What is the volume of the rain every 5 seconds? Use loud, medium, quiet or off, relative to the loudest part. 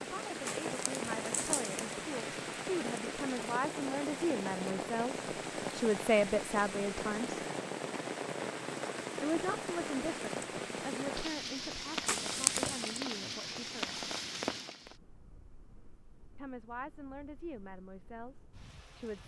loud, loud, loud, quiet.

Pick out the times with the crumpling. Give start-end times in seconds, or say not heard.
0.5-1.8, 12.1-13.0.